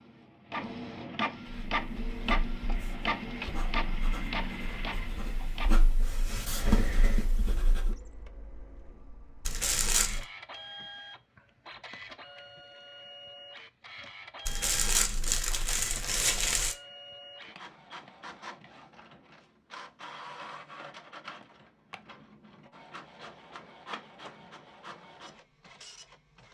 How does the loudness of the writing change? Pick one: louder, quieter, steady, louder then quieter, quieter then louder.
louder.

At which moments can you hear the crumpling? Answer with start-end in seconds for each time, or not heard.
9.4-10.2, 14.4-16.8.